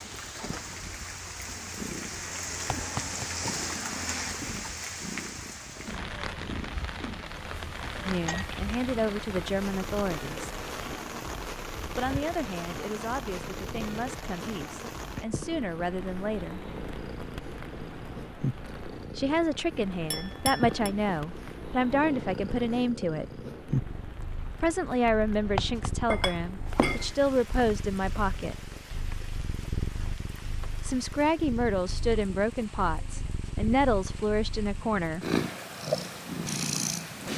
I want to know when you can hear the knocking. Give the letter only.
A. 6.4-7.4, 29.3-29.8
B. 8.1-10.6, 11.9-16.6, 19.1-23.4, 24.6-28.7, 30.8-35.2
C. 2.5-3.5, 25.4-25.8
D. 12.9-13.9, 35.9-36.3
C.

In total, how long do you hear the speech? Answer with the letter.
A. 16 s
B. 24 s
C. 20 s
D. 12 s
C.